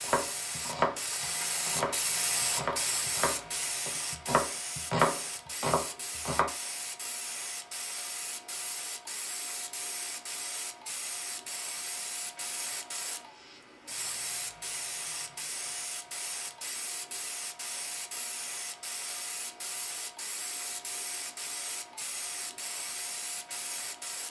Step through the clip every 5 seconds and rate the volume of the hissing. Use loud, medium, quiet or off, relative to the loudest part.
loud, medium, medium, medium, medium.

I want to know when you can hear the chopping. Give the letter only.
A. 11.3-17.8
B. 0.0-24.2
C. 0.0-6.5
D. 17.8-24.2
C.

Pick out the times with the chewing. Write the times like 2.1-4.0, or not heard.
not heard.